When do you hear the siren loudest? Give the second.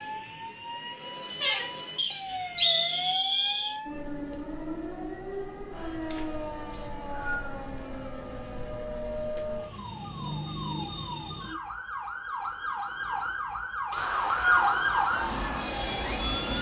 15 s.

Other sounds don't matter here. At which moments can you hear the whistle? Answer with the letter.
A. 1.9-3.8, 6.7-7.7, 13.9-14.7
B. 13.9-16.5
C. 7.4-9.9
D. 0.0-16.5
A.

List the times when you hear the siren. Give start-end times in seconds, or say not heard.
0.0-16.5.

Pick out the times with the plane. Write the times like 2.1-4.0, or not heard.
13.9-16.5.